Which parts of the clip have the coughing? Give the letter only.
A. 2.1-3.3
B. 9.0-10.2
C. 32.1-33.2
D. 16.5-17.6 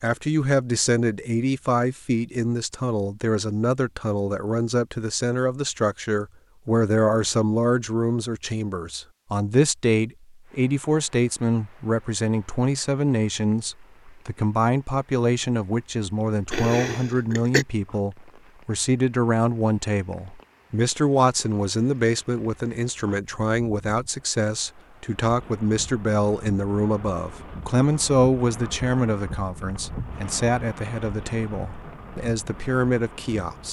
D.